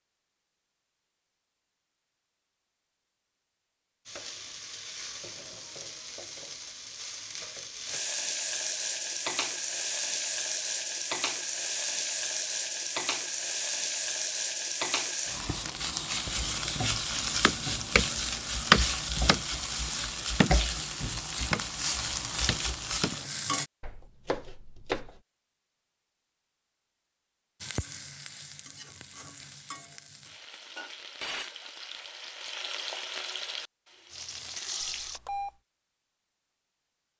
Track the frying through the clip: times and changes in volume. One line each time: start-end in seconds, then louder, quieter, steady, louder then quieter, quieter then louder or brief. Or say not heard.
4.0-23.7 louder
27.6-35.2 louder.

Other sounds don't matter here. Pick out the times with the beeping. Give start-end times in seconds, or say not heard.
34.8-35.5.